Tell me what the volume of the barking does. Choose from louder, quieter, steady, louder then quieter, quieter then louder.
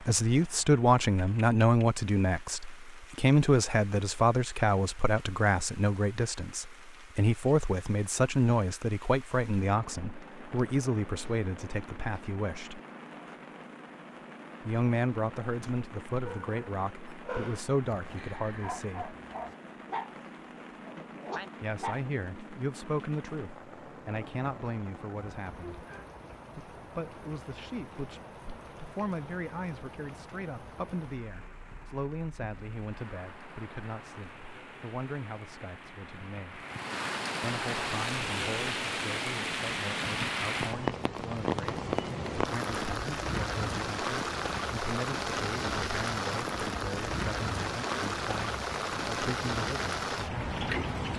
quieter then louder.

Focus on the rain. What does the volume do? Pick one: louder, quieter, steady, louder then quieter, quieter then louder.
louder.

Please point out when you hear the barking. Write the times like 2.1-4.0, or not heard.
16.2-22.1.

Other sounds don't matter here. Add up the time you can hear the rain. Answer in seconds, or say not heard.
51 s.